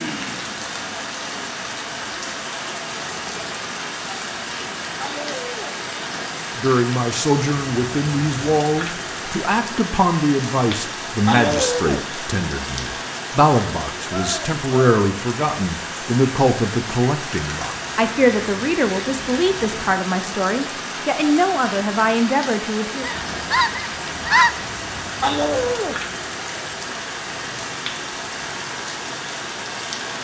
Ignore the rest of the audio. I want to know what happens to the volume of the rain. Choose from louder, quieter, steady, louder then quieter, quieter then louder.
steady.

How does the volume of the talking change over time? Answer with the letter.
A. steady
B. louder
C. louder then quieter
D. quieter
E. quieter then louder
A.